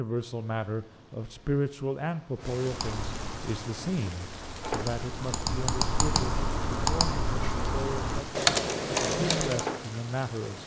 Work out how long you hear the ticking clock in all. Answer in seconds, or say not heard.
not heard.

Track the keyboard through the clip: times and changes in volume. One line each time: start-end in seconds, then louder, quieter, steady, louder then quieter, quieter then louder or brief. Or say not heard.
2.6-9.7 louder.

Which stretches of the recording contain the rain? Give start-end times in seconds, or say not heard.
0.0-10.6.